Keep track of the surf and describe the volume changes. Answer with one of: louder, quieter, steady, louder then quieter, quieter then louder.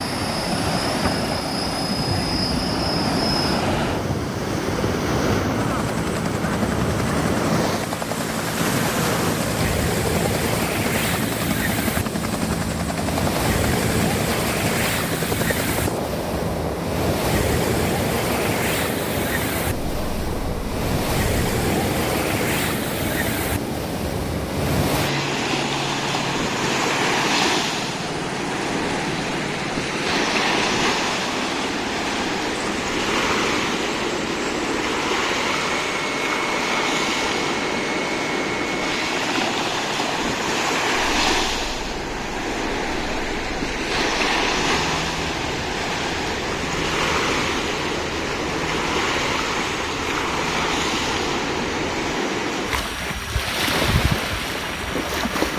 steady.